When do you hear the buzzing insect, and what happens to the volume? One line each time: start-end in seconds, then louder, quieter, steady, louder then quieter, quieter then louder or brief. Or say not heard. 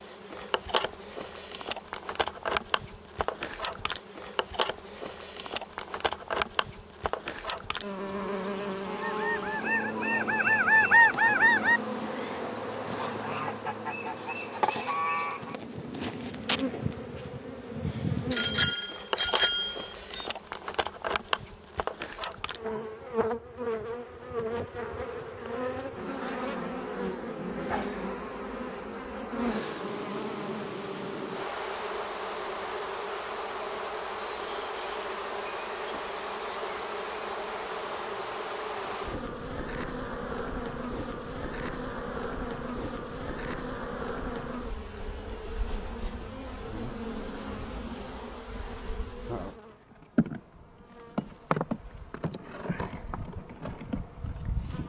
0.0-54.8 steady.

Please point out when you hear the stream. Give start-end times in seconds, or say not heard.
not heard.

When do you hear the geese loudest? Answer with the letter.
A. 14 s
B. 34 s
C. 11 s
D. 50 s
C.